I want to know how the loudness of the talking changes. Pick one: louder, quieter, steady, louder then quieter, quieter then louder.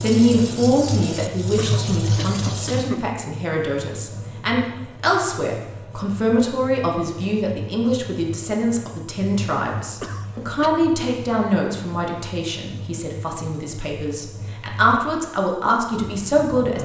steady.